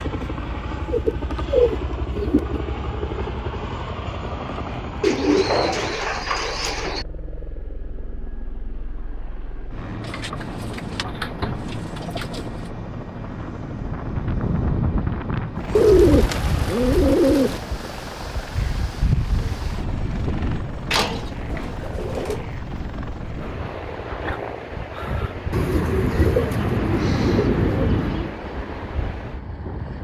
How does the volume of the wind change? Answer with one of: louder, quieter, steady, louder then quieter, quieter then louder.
quieter.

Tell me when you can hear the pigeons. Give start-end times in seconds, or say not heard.
0.9-2.6, 5.0-7.0, 10.0-12.5, 15.8-17.6, 20.9-22.4, 25.5-28.4.